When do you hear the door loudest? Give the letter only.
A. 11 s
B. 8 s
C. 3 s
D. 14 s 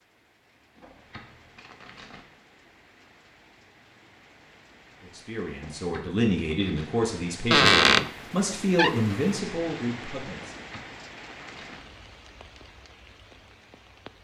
B.